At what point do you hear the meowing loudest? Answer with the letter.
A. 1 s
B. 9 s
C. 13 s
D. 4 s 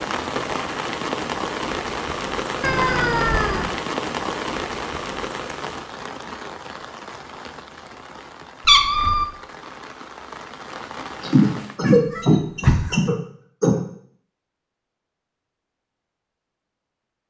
B.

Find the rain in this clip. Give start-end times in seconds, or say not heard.
0.0-11.8.